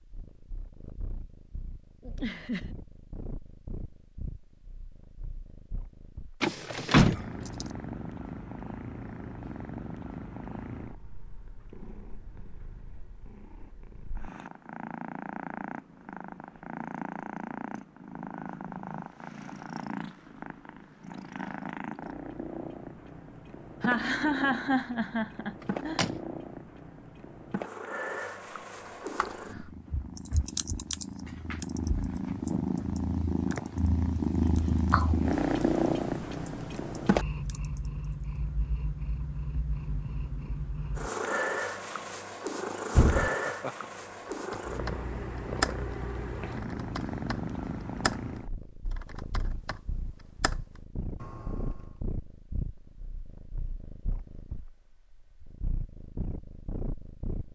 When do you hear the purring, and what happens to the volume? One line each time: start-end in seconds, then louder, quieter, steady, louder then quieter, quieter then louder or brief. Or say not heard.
0.0-57.5 louder then quieter.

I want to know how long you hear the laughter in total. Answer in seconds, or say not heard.
4 s.